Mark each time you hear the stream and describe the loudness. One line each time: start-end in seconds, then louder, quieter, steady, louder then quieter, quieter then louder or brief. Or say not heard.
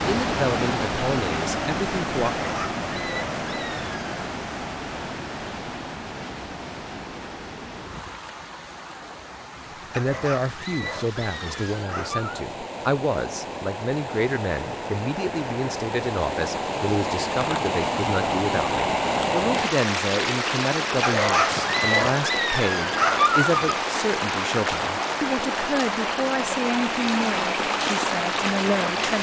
0.0-29.1 quieter then louder.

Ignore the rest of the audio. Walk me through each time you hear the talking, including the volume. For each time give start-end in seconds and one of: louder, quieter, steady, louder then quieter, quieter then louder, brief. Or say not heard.
0.1-2.4 brief
9.9-29.1 steady.